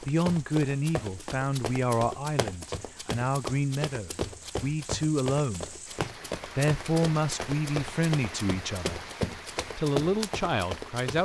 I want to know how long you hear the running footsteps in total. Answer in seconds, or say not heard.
11 s.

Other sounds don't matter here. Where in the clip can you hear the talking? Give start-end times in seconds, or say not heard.
0.0-5.8, 6.5-9.1, 9.8-11.1.